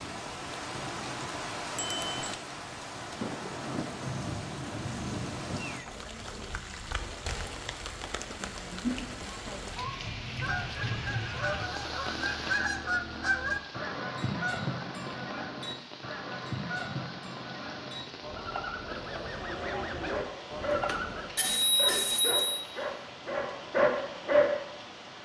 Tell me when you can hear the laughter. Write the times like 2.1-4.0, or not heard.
not heard.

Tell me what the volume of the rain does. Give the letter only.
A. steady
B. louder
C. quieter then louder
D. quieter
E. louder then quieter
D.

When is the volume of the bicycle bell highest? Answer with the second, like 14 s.
22 s.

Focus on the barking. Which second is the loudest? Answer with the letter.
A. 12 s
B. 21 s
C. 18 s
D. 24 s
D.